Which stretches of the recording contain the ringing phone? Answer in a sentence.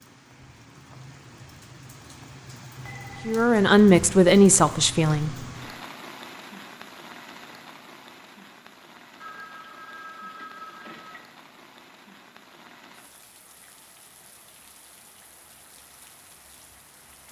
The ringing phone can be heard from 2.9 to 3.5 s and from 9.2 to 11.2 s.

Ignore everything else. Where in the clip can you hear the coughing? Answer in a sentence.
You can't hear the coughing here.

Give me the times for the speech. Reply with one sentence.
You can hear the speech from 3.2 to 5.3 s.